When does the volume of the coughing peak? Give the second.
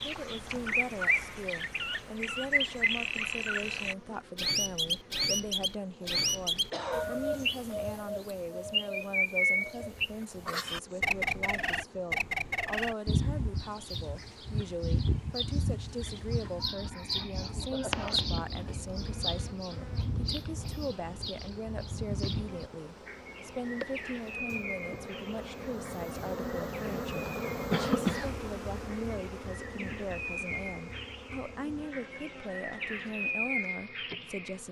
28 s.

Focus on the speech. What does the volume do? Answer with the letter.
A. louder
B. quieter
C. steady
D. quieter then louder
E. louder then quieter
C.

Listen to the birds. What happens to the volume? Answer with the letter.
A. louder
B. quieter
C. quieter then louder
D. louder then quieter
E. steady
B.